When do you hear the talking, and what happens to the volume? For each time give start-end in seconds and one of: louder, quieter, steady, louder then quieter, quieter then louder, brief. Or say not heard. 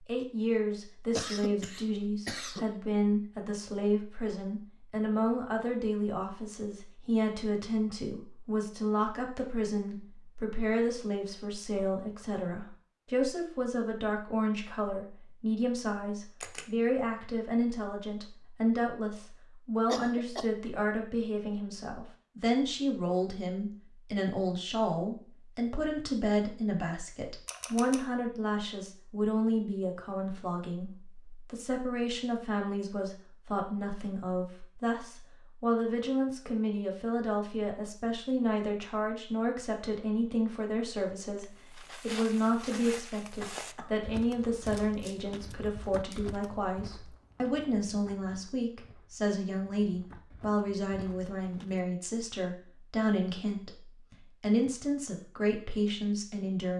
0.1-56.7 steady.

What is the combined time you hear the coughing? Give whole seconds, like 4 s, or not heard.
3 s.